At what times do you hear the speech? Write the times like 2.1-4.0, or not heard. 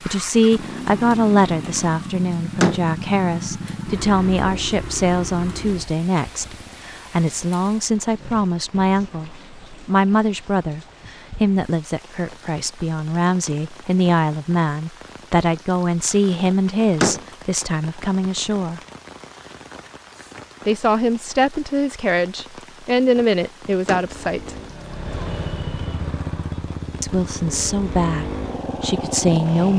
0.1-18.8, 20.6-24.6, 27.0-29.7.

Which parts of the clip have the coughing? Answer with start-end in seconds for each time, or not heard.
not heard.